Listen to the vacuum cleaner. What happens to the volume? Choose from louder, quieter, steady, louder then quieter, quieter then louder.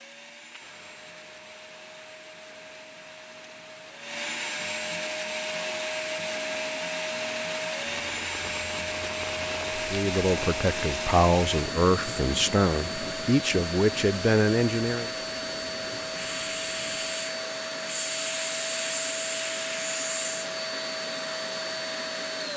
louder.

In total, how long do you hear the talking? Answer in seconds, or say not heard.
5 s.